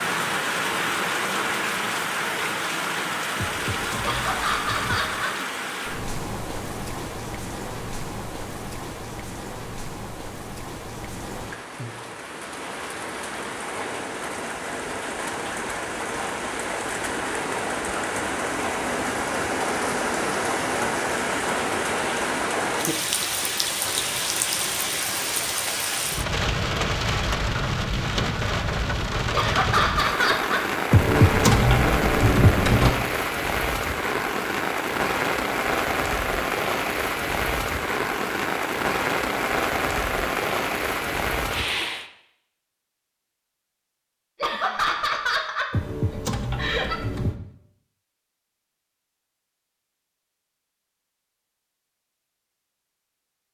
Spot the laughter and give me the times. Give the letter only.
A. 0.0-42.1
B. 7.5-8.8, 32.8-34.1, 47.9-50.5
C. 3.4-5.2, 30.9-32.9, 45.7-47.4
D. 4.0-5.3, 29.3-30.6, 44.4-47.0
D.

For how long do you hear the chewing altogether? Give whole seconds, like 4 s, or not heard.
not heard.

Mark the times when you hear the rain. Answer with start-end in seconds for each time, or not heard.
0.0-42.1.